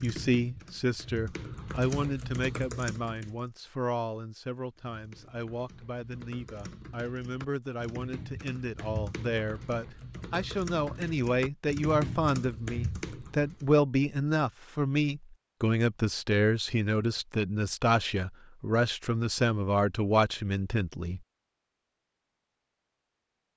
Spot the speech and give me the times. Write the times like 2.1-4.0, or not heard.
0.0-21.2.